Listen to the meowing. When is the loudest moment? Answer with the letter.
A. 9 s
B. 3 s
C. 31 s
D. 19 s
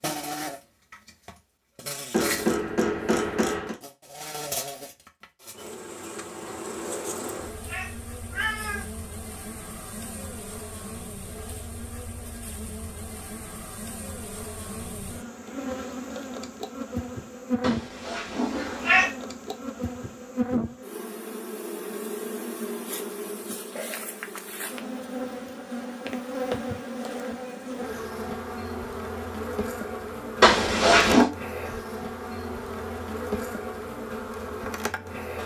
C.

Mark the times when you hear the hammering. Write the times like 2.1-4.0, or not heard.
2.1-3.8.